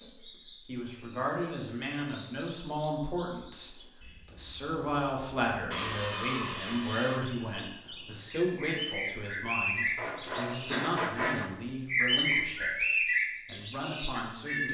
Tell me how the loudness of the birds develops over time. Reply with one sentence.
The loudness of the birds goes up.